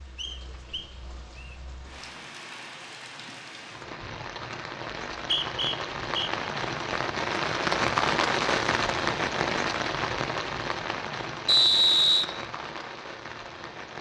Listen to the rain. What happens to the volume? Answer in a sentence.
The volume of the rain goes up, then down.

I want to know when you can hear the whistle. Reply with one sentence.
The whistle can be heard from 0.1 to 1.6 s, from 5.2 to 6.3 s and from 11.4 to 12.2 s.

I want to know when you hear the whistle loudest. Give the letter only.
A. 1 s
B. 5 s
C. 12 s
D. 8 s
C.